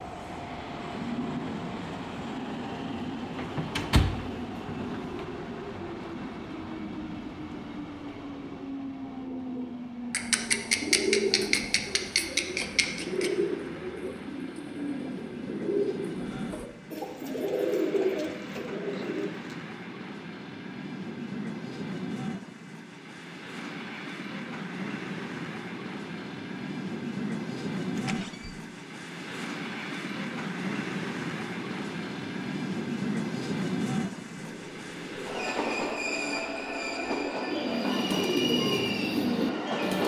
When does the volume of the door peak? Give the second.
4 s.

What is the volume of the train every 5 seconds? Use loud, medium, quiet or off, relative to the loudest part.
loud, medium, medium, medium, medium, loud, loud, loud.